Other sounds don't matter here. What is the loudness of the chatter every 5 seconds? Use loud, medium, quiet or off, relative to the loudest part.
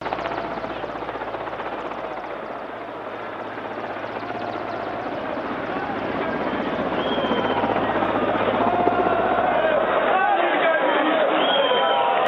quiet, medium, loud.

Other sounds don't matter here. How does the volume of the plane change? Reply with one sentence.
The volume of the plane goes up.